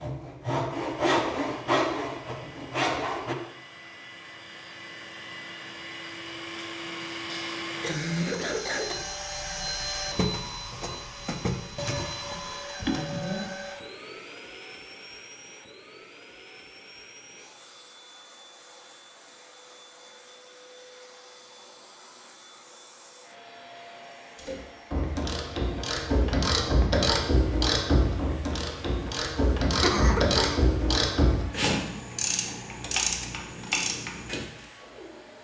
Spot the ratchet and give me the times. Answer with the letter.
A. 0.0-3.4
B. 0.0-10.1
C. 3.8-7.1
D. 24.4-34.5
D.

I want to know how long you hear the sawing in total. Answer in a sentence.
You can hear the sawing for 3 seconds altogether.